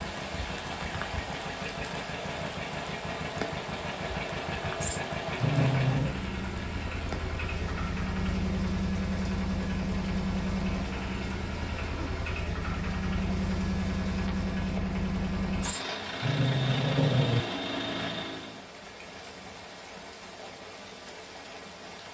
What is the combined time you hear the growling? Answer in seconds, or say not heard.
3 s.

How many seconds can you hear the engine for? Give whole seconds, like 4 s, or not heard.
19 s.